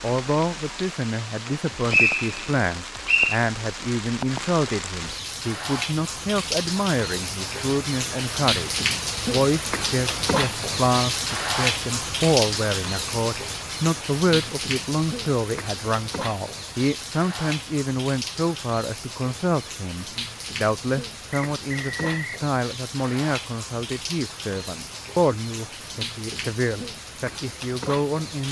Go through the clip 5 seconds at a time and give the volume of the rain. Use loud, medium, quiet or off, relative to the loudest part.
medium, loud, loud, medium, medium, medium.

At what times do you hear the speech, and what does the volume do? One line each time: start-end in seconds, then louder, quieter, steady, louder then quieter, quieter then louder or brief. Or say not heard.
0.0-8.7 steady
9.3-28.4 steady.